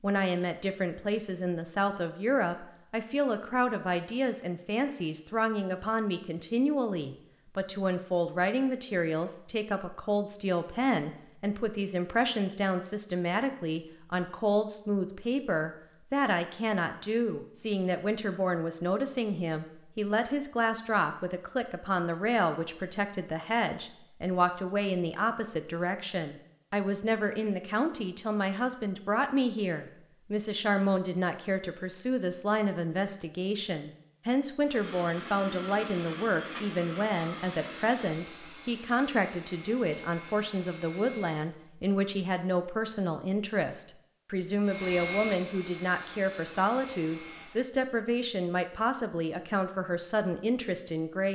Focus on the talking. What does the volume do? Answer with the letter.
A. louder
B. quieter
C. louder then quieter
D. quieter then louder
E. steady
E.